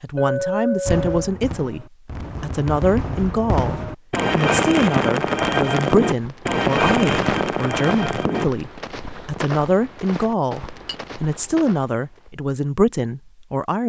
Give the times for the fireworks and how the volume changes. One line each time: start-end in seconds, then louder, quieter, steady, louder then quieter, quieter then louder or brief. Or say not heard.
0.8-8.4 louder.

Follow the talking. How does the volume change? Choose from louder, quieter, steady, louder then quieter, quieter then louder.
steady.